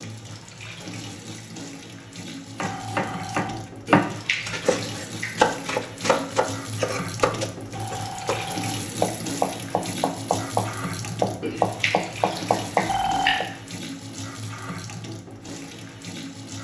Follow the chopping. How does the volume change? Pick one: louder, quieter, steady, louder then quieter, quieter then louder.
steady.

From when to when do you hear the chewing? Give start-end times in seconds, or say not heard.
3.9-5.3, 11.4-13.4.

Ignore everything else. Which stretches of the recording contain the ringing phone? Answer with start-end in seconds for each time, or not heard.
2.6-3.5, 7.8-8.8, 12.8-13.5.